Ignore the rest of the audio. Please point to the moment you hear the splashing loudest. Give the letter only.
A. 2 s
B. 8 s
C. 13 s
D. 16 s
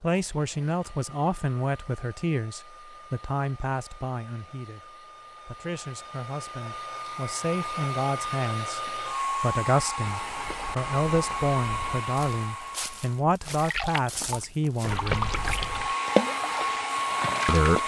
D.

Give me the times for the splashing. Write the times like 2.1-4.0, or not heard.
13.5-17.8.